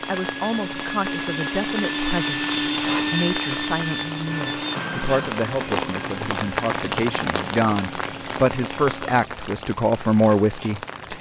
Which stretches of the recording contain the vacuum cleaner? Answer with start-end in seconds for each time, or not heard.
0.0-9.0.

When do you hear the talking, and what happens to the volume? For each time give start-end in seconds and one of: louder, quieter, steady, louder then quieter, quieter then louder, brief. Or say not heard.
0.1-11.1 louder.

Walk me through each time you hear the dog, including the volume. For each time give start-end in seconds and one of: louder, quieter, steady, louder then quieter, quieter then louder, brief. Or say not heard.
not heard.